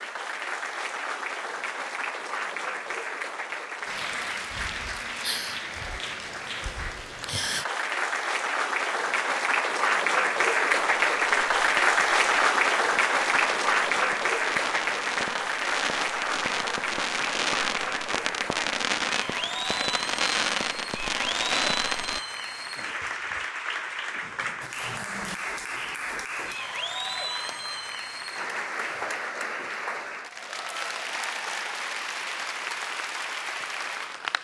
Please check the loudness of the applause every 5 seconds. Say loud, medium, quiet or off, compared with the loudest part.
medium, medium, loud, medium, medium, medium, medium.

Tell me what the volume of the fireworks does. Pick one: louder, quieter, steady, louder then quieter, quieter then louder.
louder.